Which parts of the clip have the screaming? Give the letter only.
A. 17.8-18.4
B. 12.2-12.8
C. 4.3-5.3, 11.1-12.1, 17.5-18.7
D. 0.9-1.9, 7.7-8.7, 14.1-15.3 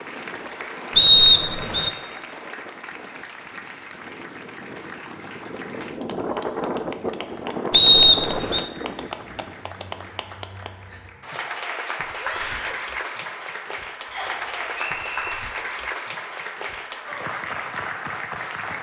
B.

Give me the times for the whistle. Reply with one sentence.
The whistle can be heard from 0.9 to 1.9 s, from 7.7 to 8.7 s and from 14.1 to 15.3 s.